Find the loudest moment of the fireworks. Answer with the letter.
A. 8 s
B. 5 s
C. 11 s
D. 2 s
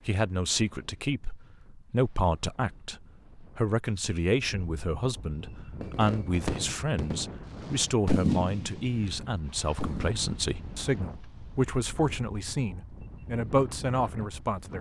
A.